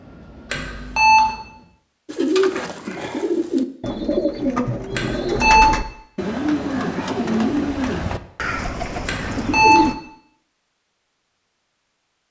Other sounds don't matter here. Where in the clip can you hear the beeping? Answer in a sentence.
You can hear the beeping from 0.5 to 1.3 s, from 5.0 to 5.8 s and from 9.1 to 9.9 s.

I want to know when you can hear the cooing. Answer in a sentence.
The cooing can be heard from 2.0 to 9.9 s.